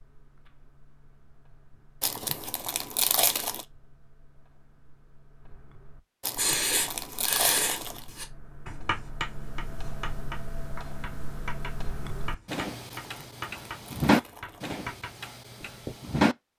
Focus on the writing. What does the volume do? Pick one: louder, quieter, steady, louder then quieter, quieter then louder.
quieter.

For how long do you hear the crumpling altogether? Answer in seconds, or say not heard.
5 s.